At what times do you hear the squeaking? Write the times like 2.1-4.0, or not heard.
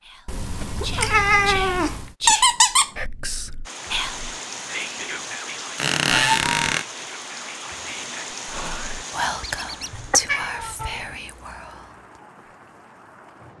2.2-2.9, 5.8-6.8, 9.4-10.0.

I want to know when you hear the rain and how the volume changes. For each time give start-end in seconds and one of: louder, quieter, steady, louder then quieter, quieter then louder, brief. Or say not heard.
3.6-13.5 quieter.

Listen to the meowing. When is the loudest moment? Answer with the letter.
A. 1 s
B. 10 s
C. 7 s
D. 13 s
A.